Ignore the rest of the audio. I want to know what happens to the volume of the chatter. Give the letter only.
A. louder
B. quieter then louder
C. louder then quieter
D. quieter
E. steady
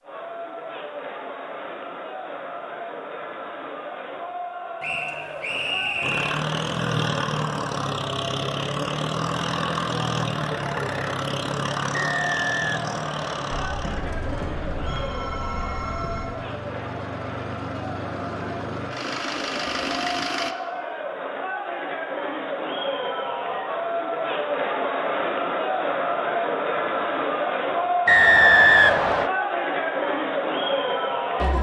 A.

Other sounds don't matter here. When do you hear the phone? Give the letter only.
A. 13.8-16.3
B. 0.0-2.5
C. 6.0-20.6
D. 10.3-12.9
A.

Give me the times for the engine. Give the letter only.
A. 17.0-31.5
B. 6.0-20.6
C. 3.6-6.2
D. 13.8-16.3
B.